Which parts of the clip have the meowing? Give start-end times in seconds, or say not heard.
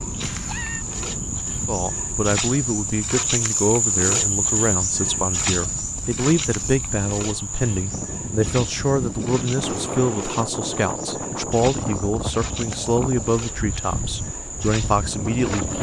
0.2-0.8.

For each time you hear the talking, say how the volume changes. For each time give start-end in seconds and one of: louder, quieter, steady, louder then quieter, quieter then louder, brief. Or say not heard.
1.6-15.7 steady.